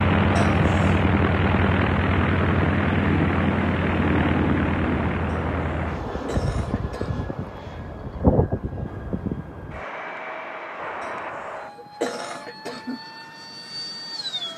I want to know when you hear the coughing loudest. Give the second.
12 s.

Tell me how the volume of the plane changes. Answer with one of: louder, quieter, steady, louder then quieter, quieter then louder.
quieter.